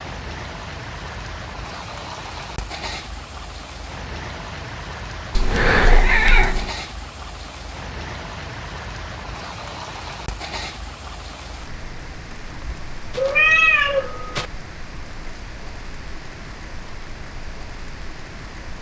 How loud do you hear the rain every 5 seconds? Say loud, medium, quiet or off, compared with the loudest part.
loud, loud, loud, medium.